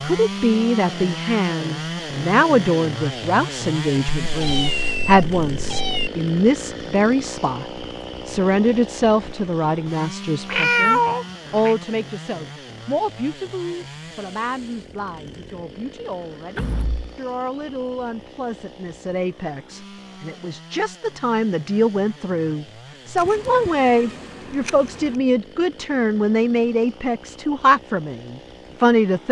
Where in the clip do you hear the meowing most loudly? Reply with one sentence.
The volume of the meowing peaks at 11 seconds.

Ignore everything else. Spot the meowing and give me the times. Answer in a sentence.
The meowing can be heard from 4.2 to 6.1 s, from 10.4 to 11.8 s and from 23.1 to 25.2 s.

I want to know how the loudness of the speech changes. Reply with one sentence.
The loudness of the speech goes down, then up.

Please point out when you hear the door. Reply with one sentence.
You can hear the door from 16.6 to 17.1 s.